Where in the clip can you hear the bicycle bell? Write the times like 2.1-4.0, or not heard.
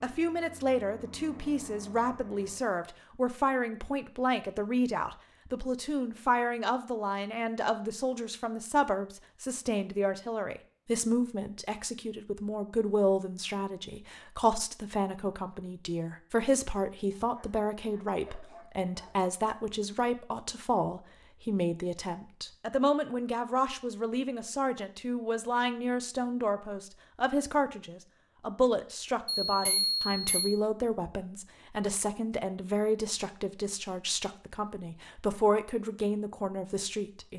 29.4-30.6.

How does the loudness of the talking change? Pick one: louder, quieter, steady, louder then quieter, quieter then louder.
steady.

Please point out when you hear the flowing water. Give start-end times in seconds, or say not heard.
not heard.